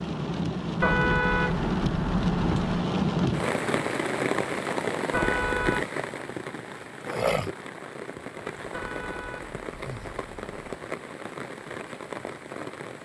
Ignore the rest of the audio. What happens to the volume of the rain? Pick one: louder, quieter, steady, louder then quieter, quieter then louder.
quieter.